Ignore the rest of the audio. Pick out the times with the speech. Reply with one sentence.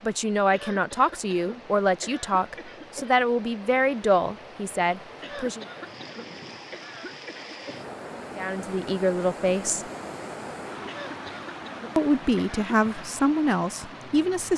You can hear the speech from 0.0 to 5.7 s, from 8.3 to 9.8 s and from 11.9 to 14.5 s.